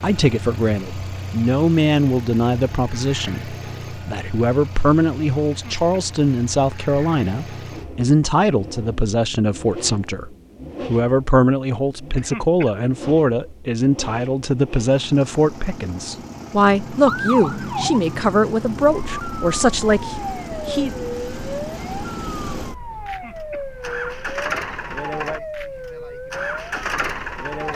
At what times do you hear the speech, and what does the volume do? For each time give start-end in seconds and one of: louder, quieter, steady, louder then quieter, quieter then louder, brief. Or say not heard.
0.0-20.9 steady.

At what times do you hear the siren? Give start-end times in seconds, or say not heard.
16.6-27.7.